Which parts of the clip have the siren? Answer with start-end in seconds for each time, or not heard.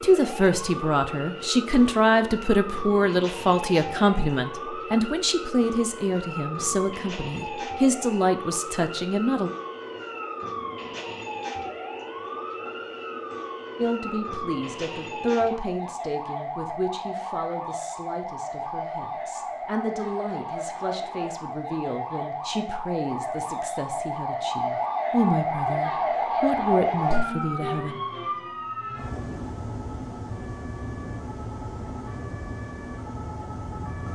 0.0-34.1.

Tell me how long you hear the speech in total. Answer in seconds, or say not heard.
24 s.